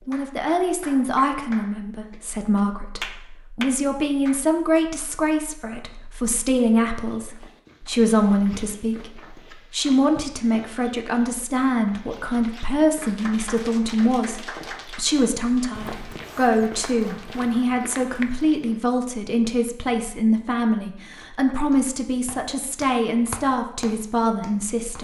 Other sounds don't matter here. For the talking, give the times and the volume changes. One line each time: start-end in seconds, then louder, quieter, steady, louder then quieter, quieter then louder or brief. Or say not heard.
0.1-25.0 steady.